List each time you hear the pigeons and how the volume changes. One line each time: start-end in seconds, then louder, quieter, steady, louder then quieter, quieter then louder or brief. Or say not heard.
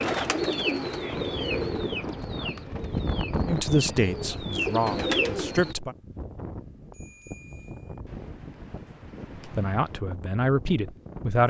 0.0-5.8 quieter then louder.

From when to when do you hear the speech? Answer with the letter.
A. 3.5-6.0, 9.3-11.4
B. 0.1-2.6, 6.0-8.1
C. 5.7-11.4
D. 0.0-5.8
A.